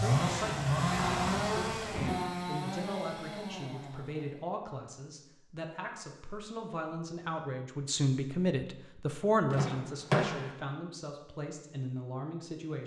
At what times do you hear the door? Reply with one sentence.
You can hear the door from 0.9 to 2.2 s and from 9.5 to 10.5 s.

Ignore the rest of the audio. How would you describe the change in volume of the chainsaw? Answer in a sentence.
The volume of the chainsaw goes down.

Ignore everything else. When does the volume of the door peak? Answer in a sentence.
The volume of the door peaks at 10 seconds.